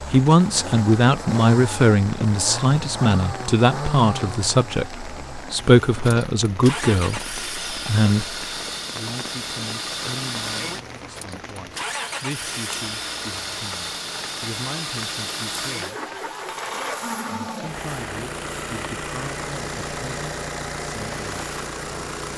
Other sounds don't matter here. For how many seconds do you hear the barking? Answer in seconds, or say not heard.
not heard.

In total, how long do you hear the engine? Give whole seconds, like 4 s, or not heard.
22 s.